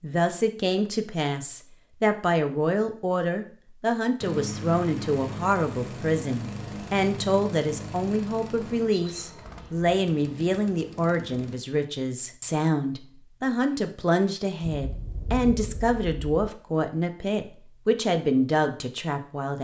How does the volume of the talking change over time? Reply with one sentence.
The volume of the talking stays about the same.